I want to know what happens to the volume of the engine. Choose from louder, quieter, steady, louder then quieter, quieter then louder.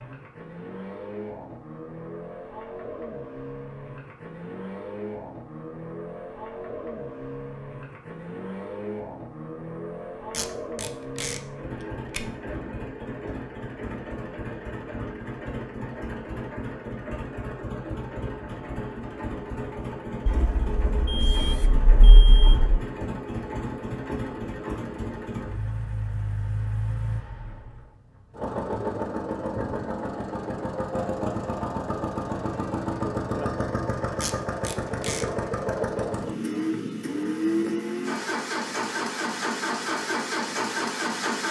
louder.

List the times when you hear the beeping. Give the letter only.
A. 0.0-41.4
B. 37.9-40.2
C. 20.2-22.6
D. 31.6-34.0
C.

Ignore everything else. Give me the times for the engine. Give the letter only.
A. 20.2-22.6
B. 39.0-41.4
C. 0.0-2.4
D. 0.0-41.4
D.